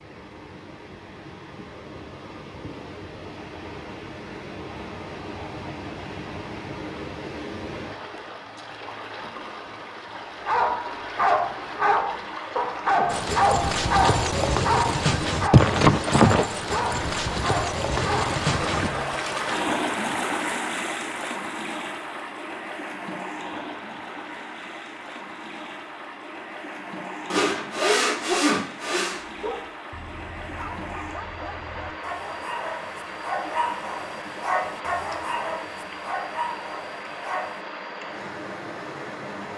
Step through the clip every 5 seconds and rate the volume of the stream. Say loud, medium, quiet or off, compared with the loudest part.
medium, medium, medium, loud, loud, medium, medium, medium.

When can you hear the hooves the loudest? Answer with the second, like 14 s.
16 s.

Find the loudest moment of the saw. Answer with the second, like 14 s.
28 s.